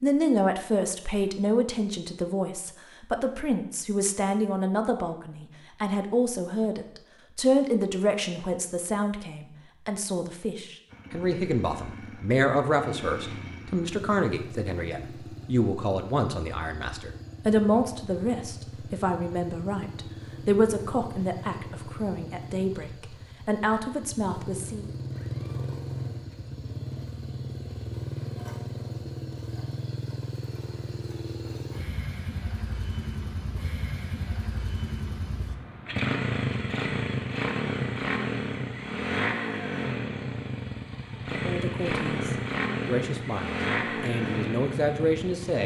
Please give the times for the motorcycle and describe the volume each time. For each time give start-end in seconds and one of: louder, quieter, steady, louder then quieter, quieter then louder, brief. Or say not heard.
10.8-45.6 louder.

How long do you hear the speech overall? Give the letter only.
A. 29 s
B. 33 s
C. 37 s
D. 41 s
A.